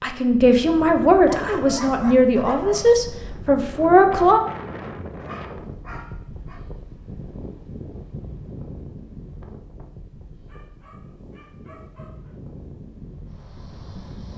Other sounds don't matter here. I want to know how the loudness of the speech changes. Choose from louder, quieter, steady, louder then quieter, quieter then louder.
steady.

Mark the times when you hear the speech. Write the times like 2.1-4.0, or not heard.
0.0-4.4.